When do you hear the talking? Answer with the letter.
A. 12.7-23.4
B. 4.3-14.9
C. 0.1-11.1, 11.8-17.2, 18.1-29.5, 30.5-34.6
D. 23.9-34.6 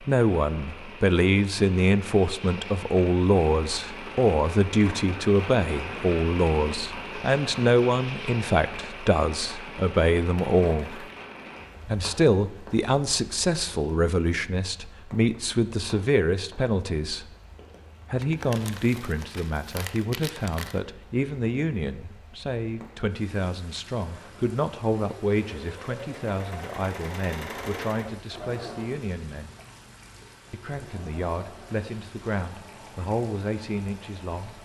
C.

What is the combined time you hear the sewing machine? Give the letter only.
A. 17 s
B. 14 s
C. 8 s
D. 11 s
D.